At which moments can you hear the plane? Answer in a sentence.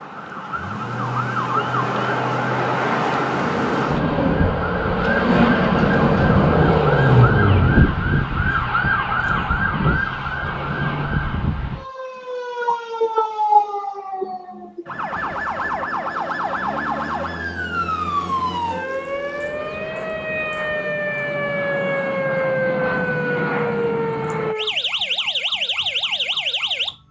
You can hear the plane from 15.1 to 24.6 s.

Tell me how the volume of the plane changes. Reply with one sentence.
The volume of the plane goes up.